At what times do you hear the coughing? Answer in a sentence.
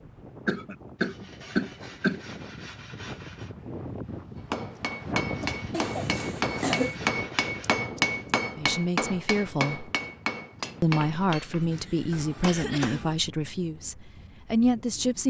You can hear the coughing from 0.5 to 2.2 s, from 5.7 to 7.0 s and from 11.6 to 13.2 s.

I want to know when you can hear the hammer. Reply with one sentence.
The hammer can be heard from 4.3 to 13.2 s.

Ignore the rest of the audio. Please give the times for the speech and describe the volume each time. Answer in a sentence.
You can hear the speech briefly from 8.6 to 9.9 s; and from 10.8 to 15.2 s, getting quieter then louder.